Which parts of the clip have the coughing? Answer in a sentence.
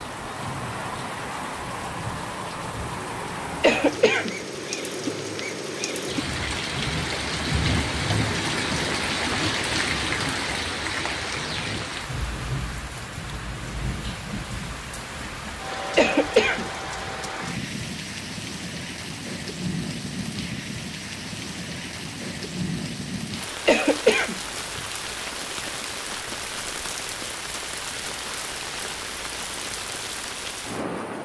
The coughing can be heard from 3.6 to 4.3 s, from 15.9 to 17.1 s and from 23.6 to 24.9 s.